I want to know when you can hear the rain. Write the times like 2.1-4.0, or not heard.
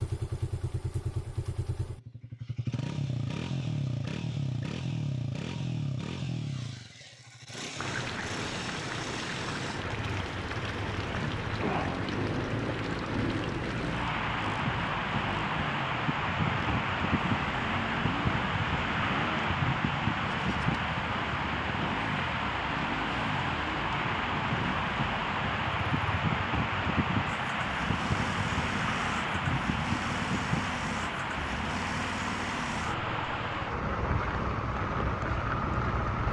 7.8-36.2.